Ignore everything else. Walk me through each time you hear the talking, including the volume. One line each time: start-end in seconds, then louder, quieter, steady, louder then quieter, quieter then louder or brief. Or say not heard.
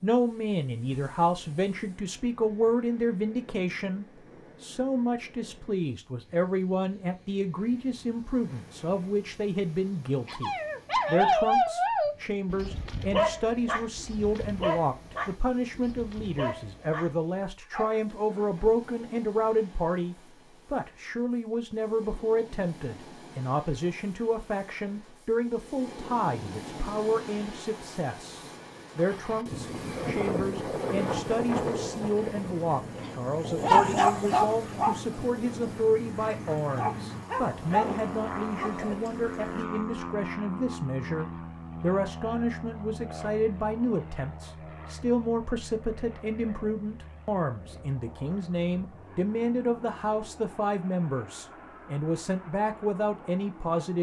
0.0-53.9 steady.